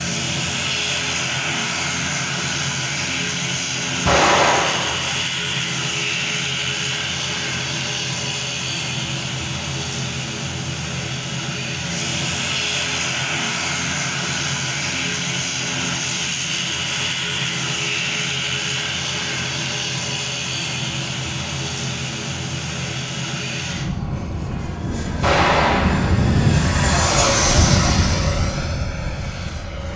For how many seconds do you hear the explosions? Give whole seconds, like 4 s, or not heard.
2 s.